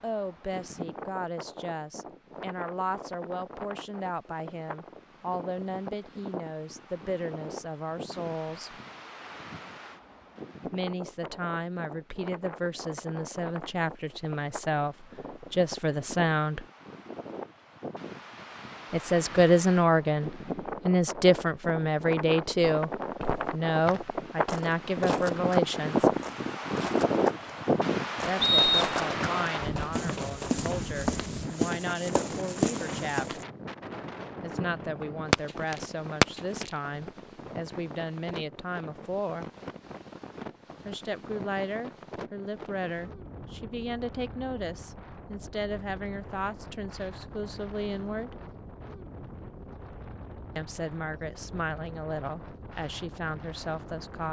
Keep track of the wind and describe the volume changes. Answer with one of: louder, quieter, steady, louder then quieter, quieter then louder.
louder then quieter.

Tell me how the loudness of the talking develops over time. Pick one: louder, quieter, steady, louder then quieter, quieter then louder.
louder then quieter.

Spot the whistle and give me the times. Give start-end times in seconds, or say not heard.
28.4-29.0.